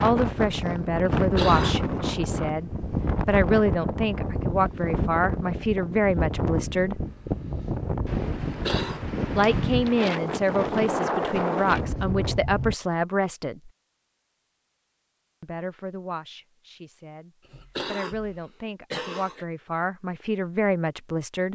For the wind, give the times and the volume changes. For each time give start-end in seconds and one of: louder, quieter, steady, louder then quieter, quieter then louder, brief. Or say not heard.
0.0-12.8 steady.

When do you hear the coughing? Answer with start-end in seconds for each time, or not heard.
1.1-1.9, 8.4-9.0, 17.4-19.4.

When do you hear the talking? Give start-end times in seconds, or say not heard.
0.0-7.0, 9.3-13.7, 15.4-21.4.